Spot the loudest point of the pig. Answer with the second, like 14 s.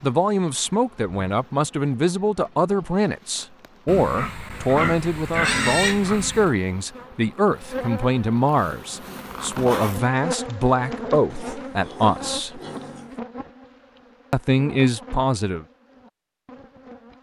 6 s.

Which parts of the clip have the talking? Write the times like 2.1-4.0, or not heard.
0.0-12.6, 14.3-15.7.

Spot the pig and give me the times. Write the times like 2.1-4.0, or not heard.
3.9-6.5, 11.3-13.2.